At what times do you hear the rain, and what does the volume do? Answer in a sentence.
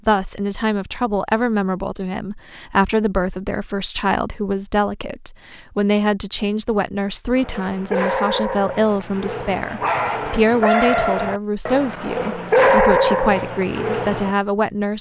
You can't hear the rain here.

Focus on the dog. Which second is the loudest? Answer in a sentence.
The loudest moment of the dog is at 13 seconds.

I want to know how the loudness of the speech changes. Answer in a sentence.
The volume of the speech stays about the same.